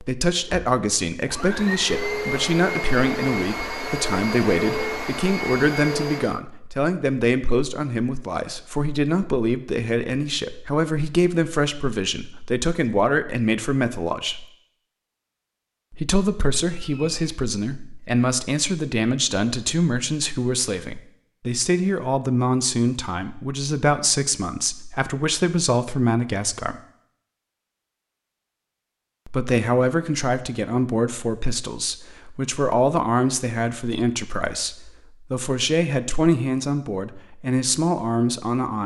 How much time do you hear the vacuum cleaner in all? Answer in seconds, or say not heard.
6 s.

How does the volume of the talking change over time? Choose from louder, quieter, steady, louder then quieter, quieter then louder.
steady.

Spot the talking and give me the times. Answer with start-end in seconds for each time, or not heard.
0.0-14.4, 15.9-26.8, 29.2-38.8.